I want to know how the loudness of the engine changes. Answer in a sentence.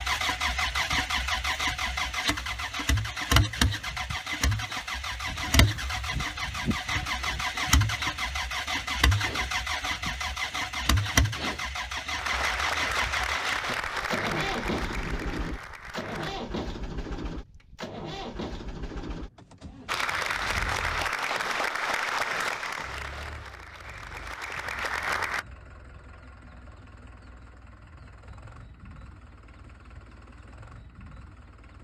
The loudness of the engine goes down.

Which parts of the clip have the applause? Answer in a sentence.
The applause can be heard from 12.2 to 16.4 s and from 19.9 to 25.4 s.